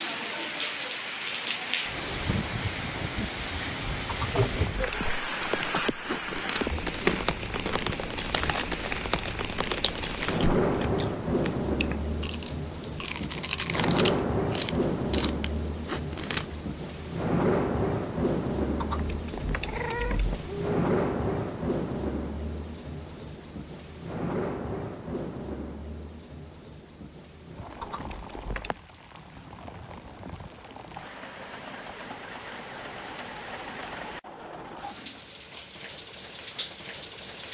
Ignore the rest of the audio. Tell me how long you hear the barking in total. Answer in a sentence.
The barking can't be heard in this clip.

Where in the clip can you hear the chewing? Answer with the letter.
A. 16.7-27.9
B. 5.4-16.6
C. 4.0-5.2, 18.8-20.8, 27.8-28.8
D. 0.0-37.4
B.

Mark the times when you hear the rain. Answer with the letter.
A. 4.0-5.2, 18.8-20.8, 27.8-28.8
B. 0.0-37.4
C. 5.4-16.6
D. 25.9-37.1
B.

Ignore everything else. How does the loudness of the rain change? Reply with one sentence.
The volume of the rain goes down.